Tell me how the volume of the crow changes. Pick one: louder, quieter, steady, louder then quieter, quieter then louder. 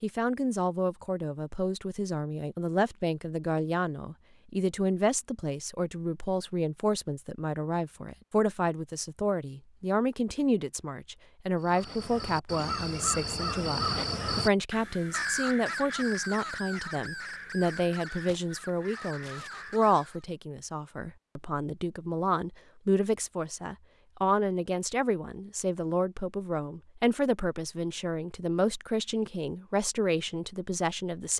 quieter.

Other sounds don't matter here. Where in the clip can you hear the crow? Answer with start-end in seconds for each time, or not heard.
11.6-20.2.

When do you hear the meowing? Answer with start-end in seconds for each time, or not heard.
not heard.